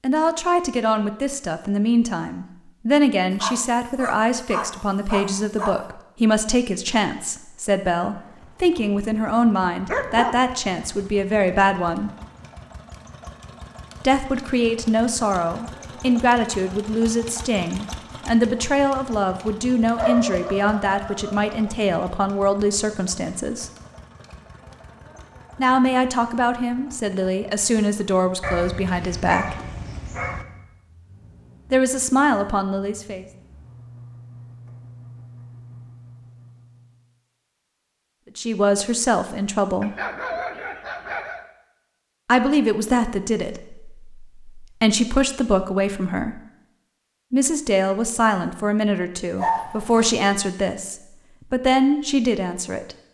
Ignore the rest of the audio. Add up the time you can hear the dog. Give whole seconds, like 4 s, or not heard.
9 s.